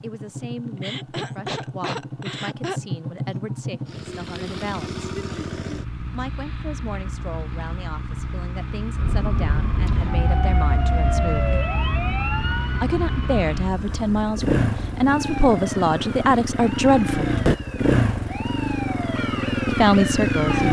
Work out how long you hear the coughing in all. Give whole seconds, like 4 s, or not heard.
2 s.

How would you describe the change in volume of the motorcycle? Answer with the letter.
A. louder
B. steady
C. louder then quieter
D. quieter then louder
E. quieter
A.